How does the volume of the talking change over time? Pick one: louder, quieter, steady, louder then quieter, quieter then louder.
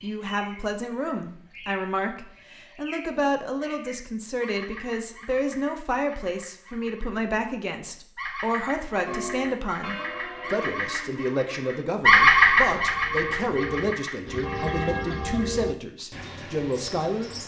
steady.